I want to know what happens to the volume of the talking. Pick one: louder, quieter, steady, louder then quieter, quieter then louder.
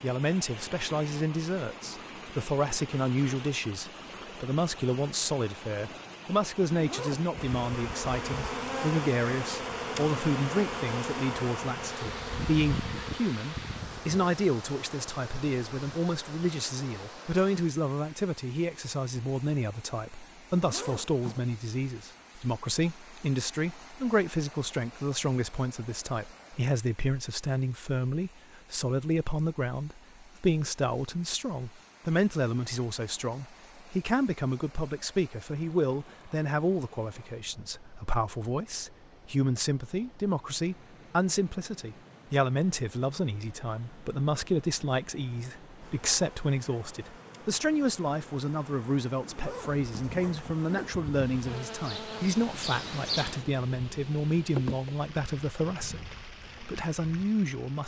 steady.